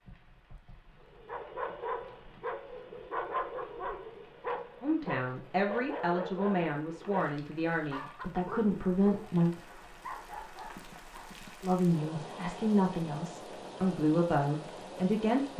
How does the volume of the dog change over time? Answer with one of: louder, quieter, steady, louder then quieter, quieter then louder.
quieter.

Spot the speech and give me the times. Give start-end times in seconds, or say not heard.
4.8-9.5, 11.6-15.5.